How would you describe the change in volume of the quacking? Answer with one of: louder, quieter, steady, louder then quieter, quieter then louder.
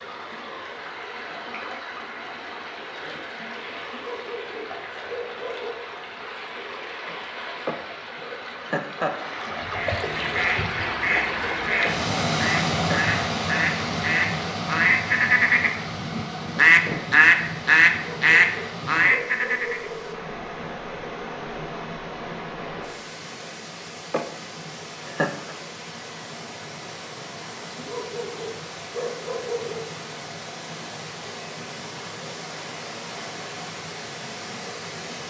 louder.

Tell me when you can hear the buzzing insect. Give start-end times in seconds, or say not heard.
not heard.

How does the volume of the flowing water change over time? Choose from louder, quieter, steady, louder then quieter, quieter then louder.
louder then quieter.